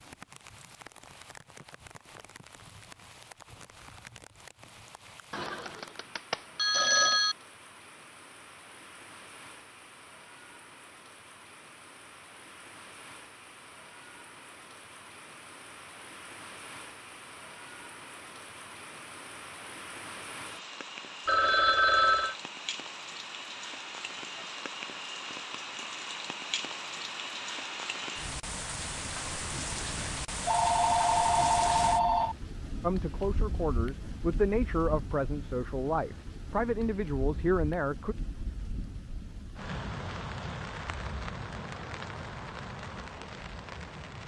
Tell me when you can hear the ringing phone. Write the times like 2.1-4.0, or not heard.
5.3-7.3, 21.2-22.4, 30.4-32.4.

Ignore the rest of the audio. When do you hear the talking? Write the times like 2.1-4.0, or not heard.
32.8-38.1.